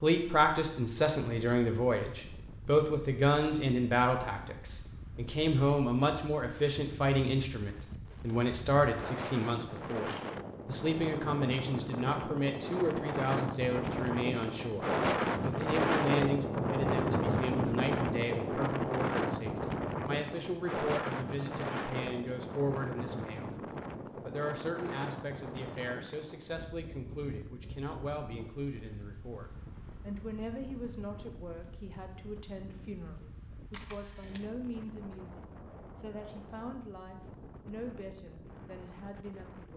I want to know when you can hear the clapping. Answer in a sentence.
You can't hear the clapping here.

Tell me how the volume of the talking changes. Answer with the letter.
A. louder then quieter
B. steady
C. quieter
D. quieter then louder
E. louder
C.